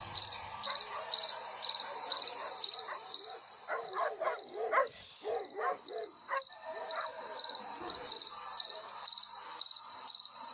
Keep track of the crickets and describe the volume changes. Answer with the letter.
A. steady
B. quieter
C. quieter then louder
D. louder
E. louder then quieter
C.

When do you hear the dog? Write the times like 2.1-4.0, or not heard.
0.0-8.1.